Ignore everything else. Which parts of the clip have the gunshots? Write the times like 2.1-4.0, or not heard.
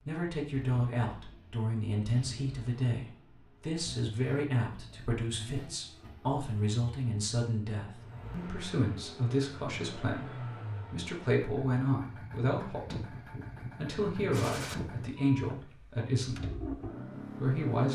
14.3-14.8.